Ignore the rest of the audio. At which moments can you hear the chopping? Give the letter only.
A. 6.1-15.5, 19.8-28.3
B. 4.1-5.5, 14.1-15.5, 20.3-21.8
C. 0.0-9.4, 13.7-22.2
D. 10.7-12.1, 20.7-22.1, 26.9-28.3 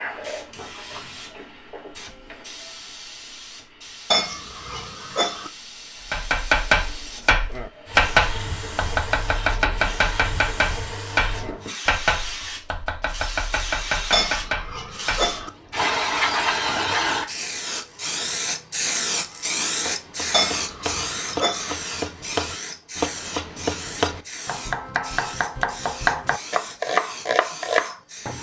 A.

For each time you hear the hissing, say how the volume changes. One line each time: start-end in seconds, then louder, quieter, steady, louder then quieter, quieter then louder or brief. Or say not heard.
0.0-28.3 louder then quieter.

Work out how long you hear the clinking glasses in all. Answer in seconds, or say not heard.
4 s.